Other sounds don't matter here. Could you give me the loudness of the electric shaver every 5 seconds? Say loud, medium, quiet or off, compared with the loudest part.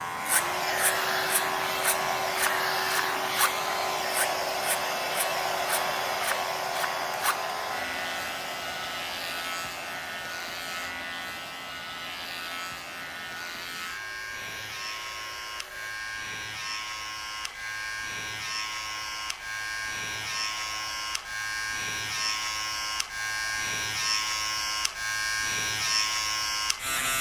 loud, medium, medium, medium, loud, loud.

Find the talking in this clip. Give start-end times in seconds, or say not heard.
not heard.